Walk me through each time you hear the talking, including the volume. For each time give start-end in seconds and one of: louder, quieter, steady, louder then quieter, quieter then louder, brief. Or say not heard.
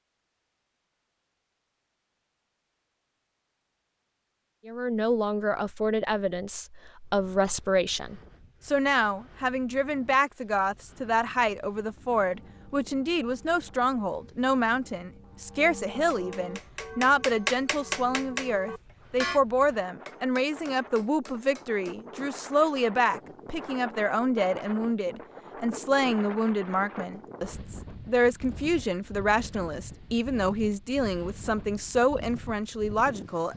4.7-33.5 steady.